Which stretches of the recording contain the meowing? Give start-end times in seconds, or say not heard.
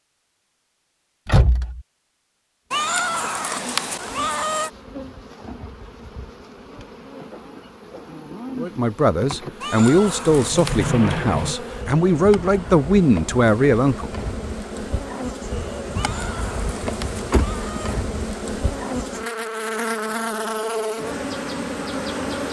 2.7-4.7, 9.6-10.9, 15.9-18.1.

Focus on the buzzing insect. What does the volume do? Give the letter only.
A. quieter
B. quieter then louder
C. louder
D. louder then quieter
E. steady
C.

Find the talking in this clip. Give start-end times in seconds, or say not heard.
8.6-14.2.